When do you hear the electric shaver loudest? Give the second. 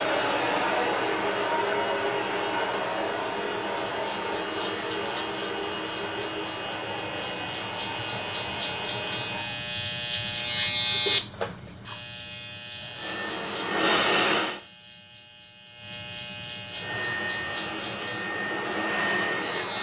11 s.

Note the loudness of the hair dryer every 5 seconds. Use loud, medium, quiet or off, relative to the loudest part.
loud, medium, loud, medium.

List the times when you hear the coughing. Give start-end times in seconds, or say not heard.
not heard.